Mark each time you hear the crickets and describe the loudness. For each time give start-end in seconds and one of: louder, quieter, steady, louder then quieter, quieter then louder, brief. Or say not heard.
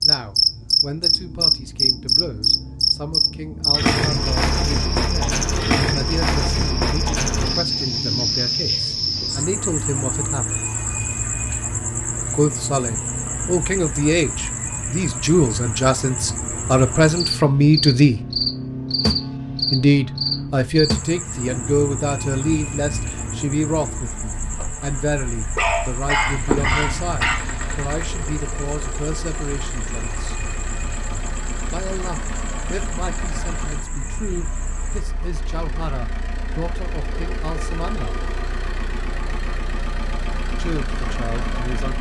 0.0-35.0 quieter.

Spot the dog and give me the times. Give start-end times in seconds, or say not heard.
25.6-27.4.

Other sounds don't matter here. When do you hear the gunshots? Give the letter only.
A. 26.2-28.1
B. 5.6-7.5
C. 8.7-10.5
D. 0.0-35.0
A.